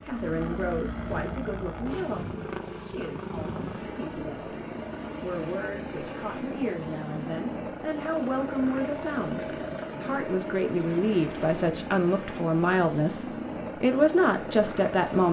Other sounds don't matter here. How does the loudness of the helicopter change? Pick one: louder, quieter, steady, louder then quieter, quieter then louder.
steady.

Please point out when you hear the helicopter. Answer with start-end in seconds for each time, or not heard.
0.0-15.2.